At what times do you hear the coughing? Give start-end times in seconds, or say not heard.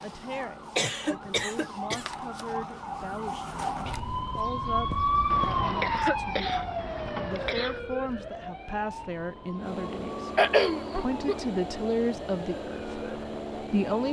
0.8-2.0, 5.3-7.8, 10.3-11.3.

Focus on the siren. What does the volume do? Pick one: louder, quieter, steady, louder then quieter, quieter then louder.
louder then quieter.